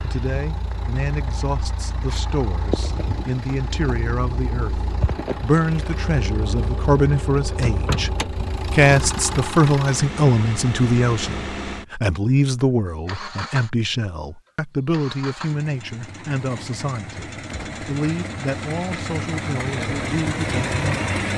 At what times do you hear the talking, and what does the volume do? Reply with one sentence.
The talking can be heard from 0.0 to 21.1 s, getting louder then quieter.